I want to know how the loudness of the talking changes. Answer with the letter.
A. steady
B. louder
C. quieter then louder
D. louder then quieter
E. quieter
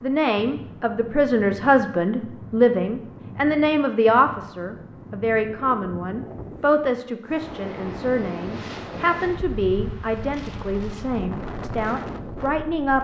E.